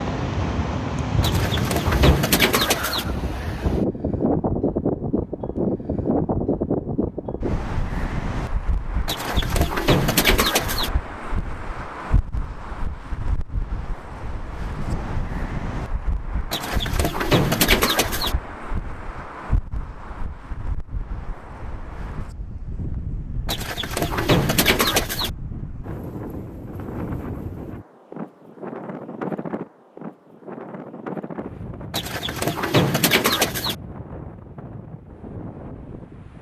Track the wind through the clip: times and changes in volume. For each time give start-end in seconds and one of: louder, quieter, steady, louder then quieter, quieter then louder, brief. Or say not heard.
0.0-36.3 quieter.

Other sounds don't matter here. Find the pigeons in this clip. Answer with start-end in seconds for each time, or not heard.
1.2-3.0, 9.1-10.9, 16.5-18.4, 23.4-25.3, 31.9-33.8.